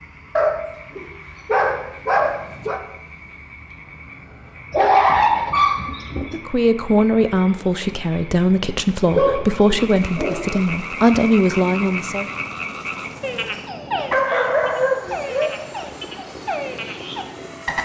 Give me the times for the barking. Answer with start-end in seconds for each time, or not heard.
0.3-2.8, 4.7-6.5, 9.1-10.6, 14.1-15.7.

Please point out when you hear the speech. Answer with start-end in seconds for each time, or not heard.
6.2-12.2.